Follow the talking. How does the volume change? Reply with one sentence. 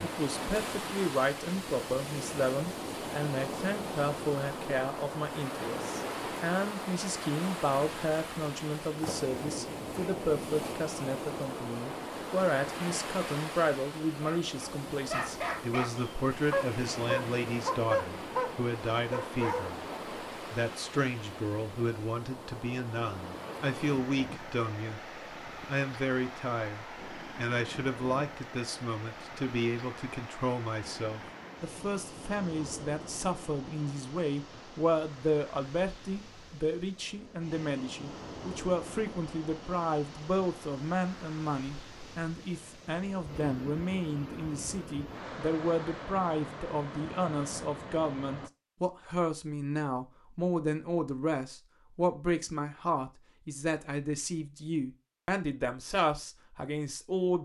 The volume of the talking stays about the same.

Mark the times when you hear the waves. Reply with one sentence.
The waves can be heard from 0.0 to 48.5 s.